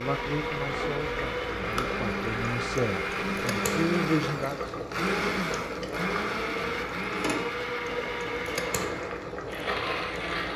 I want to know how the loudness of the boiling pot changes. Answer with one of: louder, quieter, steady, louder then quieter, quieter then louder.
steady.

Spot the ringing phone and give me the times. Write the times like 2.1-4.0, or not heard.
not heard.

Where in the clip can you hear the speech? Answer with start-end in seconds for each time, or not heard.
0.0-4.8.